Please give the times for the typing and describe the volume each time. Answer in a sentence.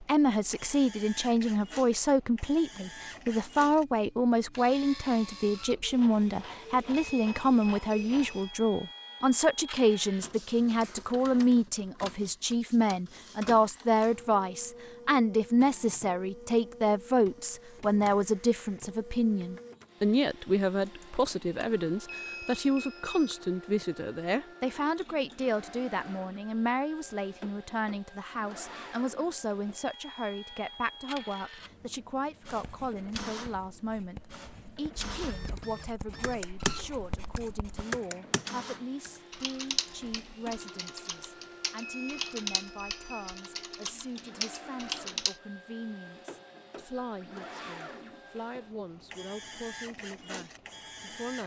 You can hear the typing from 35.0 to 45.4 s, at a steady volume.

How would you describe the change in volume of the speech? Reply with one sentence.
The loudness of the speech goes down.